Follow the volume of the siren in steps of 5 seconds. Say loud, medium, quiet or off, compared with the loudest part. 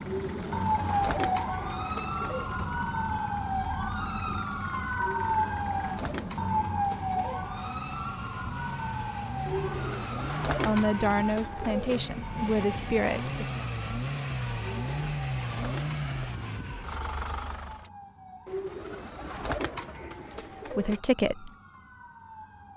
loud, loud, medium, quiet, quiet.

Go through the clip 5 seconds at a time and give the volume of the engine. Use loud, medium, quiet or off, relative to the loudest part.
quiet, medium, loud, loud, off.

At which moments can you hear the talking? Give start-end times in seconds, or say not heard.
10.6-13.7, 20.7-21.5.